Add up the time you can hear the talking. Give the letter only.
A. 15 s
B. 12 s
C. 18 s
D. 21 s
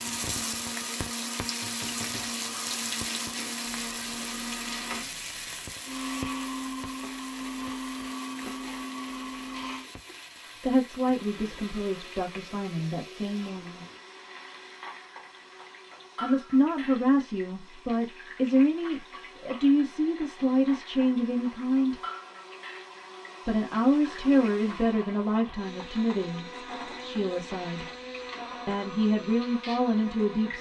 A.